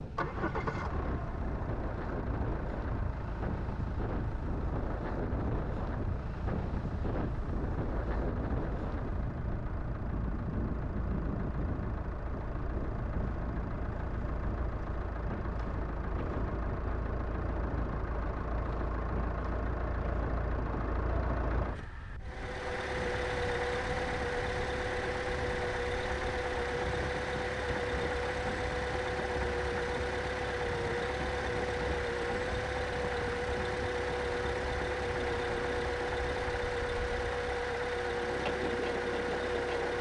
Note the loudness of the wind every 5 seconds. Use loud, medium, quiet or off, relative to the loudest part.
loud, loud, loud, medium, medium, medium, medium, medium.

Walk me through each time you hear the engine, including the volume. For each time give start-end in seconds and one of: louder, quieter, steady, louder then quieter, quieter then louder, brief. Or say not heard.
0.0-39.9 louder.